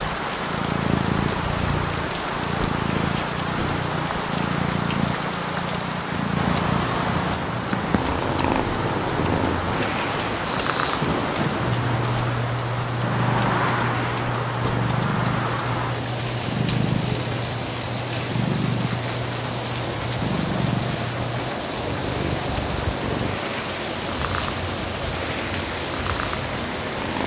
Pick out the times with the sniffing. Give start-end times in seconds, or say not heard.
not heard.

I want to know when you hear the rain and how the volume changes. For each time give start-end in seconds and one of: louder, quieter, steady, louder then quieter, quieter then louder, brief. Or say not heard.
0.0-27.2 steady.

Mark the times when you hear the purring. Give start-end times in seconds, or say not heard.
0.0-27.2.